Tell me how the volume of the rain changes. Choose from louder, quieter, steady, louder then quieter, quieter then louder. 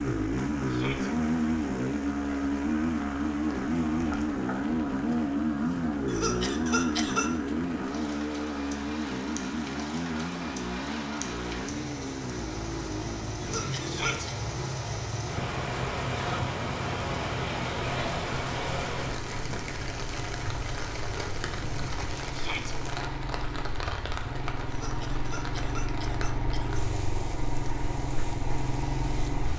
louder then quieter.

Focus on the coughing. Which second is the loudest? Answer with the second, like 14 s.
7 s.